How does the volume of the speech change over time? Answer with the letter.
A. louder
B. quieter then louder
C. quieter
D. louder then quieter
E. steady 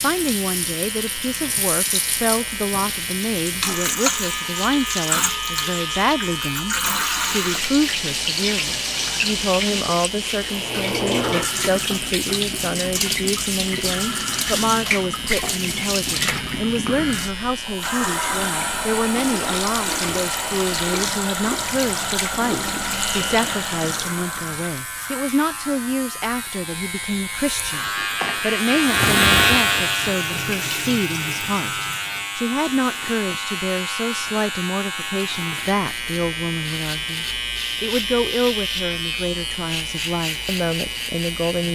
E.